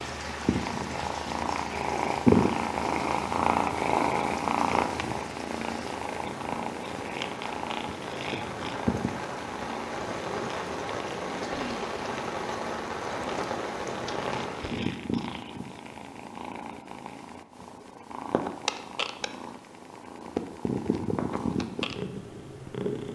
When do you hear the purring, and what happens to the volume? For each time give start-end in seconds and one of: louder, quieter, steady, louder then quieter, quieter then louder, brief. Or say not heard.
0.0-23.0 quieter then louder.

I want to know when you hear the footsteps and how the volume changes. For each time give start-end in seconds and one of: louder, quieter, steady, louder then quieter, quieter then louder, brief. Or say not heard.
not heard.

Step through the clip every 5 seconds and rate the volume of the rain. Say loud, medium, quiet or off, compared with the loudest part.
medium, medium, loud, off, off.